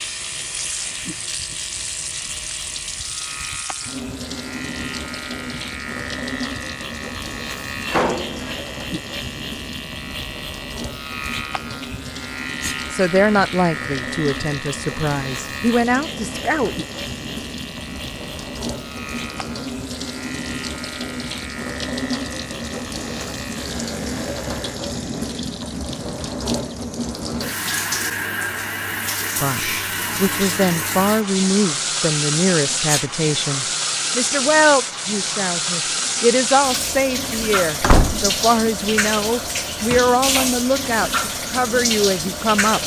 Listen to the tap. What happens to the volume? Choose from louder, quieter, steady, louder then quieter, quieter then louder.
louder.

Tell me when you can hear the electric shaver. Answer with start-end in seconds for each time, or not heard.
0.0-24.8.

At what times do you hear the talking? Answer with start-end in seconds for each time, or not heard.
12.9-16.8, 29.4-42.8.